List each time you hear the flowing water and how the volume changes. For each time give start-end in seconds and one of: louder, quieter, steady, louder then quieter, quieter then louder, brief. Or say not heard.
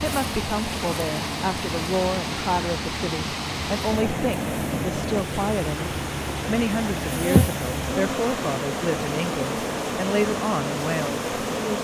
0.0-11.7 steady.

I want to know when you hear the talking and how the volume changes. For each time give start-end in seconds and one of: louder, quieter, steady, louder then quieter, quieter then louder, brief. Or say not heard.
0.0-11.3 steady.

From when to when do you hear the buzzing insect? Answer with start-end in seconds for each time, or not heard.
0.0-11.7.